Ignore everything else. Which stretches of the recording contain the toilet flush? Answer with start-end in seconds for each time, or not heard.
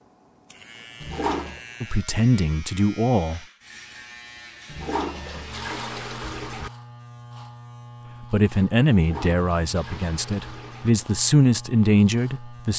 1.0-1.6, 4.7-6.7, 8.9-10.9.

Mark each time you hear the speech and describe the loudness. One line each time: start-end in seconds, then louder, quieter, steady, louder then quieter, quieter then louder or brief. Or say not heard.
1.8-3.4 brief
8.2-12.7 quieter then louder.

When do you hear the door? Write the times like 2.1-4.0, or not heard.
not heard.